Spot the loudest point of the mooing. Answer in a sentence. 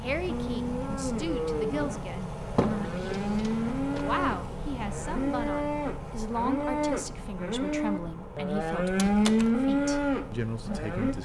The volume of the mooing peaks at 9 seconds.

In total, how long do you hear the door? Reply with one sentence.
The door can be heard for 2 seconds in total.